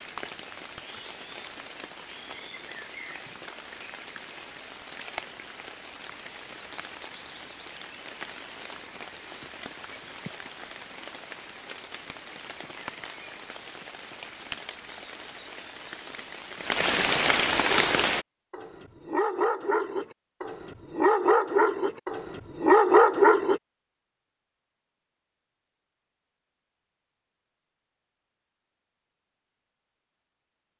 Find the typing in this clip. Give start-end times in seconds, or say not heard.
not heard.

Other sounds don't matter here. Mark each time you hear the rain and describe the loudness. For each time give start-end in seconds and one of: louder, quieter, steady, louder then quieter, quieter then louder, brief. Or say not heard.
0.0-18.2 louder.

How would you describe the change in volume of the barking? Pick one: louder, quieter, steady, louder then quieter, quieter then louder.
louder.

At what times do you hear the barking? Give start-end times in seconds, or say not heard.
17.7-23.6.